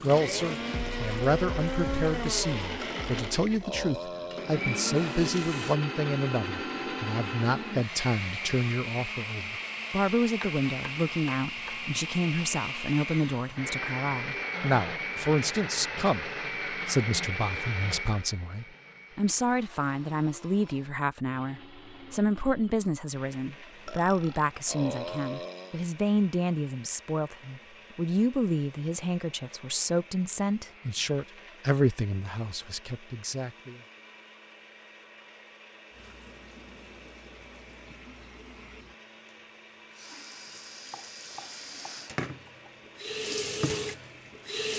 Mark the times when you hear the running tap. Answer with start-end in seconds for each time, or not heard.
0.0-5.8, 35.9-44.7.